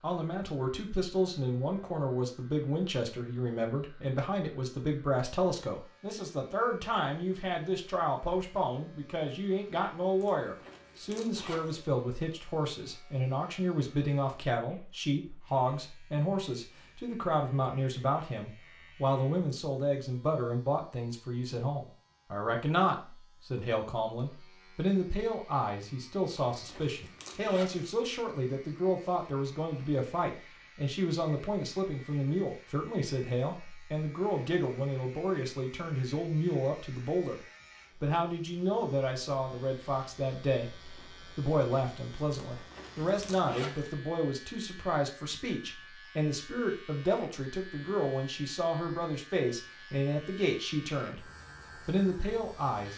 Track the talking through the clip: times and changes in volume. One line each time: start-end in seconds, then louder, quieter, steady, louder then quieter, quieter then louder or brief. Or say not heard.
0.0-37.4 steady
38.0-51.2 steady
51.9-52.9 brief.